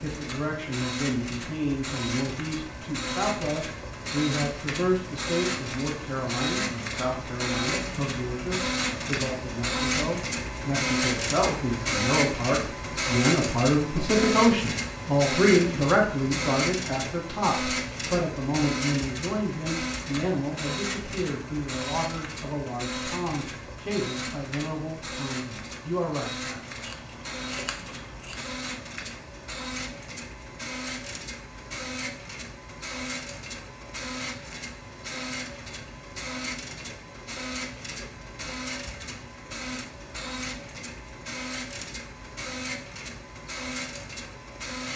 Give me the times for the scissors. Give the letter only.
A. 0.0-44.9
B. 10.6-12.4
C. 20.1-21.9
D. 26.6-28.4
D.